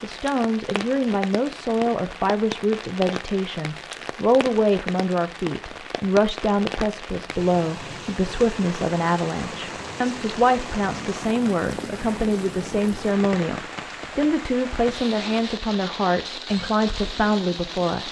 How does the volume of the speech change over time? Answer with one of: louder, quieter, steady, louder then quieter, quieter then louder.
steady.